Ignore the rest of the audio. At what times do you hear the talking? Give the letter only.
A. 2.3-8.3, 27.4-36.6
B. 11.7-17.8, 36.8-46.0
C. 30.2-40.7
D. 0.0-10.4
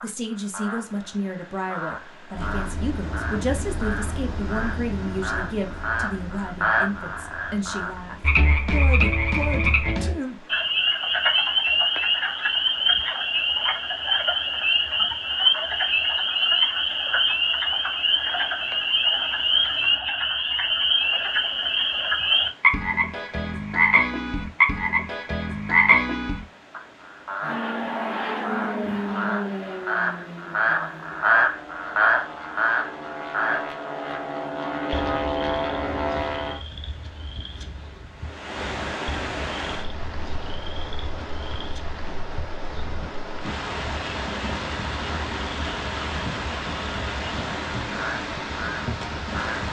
D.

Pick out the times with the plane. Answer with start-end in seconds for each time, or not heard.
2.3-8.3, 27.4-36.6.